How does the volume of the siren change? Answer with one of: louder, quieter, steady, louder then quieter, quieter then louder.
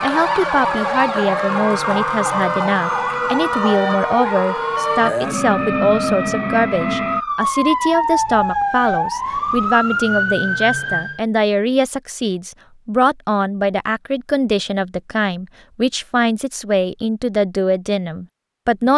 steady.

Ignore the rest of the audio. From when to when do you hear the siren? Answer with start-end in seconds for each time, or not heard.
0.0-11.2.